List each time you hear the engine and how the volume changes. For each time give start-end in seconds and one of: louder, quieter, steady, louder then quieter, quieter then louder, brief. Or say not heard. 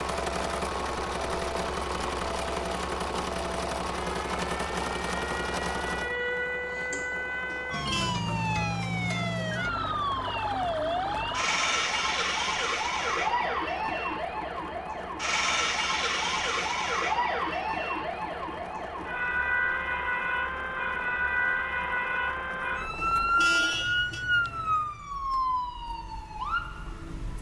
0.0-25.2 quieter.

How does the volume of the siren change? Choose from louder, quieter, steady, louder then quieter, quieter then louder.
louder.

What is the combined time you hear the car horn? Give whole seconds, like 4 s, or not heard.
2 s.